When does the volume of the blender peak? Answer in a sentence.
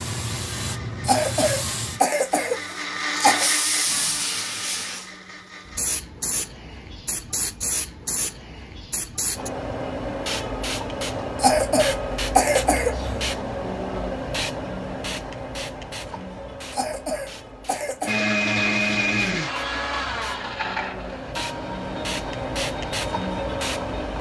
The volume of the blender peaks at 19 seconds.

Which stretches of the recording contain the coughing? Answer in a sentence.
The coughing can be heard from 1.0 to 3.5 s, from 11.3 to 13.1 s and from 16.7 to 18.2 s.